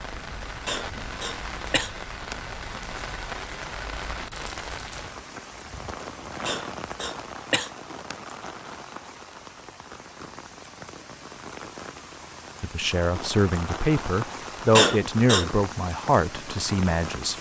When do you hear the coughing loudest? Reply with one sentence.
The volume of the coughing peaks at 15 seconds.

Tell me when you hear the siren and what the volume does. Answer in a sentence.
You can't hear the siren here.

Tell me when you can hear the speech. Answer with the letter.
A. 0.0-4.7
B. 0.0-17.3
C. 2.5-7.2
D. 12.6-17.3
D.